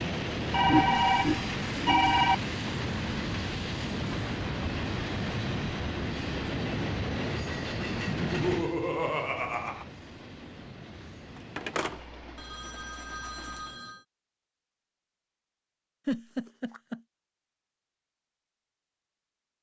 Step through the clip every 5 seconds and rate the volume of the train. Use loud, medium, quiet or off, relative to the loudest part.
loud, loud, quiet, off.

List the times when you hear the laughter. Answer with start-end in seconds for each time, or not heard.
0.7-2.4, 8.1-9.8, 16.1-17.0.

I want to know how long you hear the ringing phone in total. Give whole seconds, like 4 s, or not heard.
4 s.